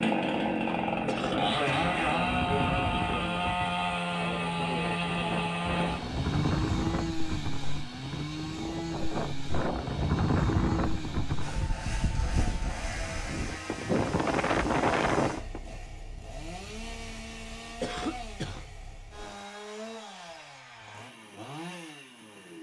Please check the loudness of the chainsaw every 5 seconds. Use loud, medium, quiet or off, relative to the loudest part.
loud, medium, medium, quiet, quiet.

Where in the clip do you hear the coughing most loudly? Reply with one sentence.
The volume of the coughing peaks at 18 seconds.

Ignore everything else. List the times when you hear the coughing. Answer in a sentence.
The coughing can be heard from 1.1 to 1.9 s and from 17.8 to 18.6 s.